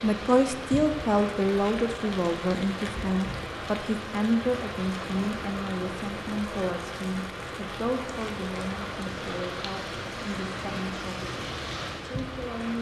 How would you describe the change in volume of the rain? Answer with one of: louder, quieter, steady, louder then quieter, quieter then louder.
steady.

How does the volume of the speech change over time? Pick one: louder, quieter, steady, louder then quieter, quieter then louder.
quieter.